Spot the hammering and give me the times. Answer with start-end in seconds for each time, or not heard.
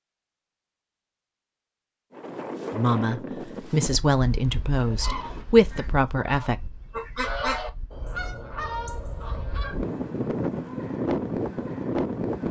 not heard.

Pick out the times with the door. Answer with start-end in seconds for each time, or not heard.
not heard.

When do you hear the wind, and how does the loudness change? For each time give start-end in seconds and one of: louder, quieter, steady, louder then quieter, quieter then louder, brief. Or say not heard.
2.1-12.4 quieter then louder.